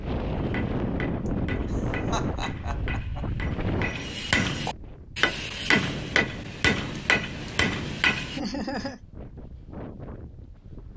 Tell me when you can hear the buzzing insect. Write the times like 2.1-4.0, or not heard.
not heard.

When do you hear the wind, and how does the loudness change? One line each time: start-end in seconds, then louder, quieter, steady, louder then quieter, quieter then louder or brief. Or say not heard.
0.0-10.9 quieter.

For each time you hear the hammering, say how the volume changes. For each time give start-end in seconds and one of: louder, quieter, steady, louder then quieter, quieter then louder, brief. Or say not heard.
0.2-8.4 louder.